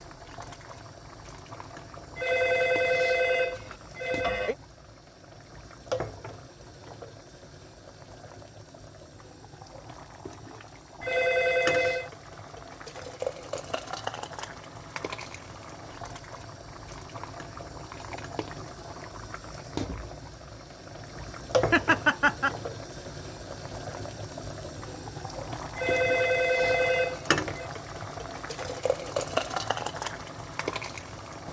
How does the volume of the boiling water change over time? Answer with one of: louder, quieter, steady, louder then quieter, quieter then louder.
louder.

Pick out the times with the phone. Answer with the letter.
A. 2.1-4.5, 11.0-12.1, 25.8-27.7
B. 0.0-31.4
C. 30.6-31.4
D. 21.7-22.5
A.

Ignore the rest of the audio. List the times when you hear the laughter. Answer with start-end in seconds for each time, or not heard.
21.7-22.5.